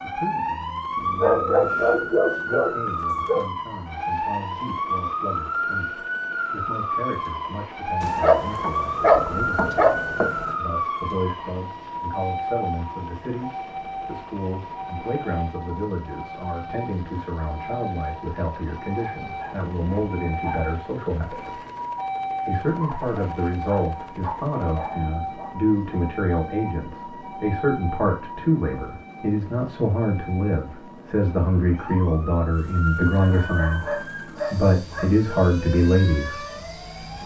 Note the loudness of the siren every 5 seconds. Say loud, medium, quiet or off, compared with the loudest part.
loud, loud, loud, medium, medium, medium, medium, medium.